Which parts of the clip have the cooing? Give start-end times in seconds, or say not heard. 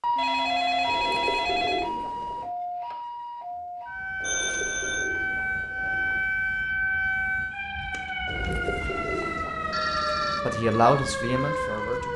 0.8-2.5, 4.2-6.2, 8.2-9.9.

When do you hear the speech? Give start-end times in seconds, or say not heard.
10.4-12.1.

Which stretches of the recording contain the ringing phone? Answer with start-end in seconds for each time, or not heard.
0.1-1.9, 4.2-5.1, 8.9-10.4.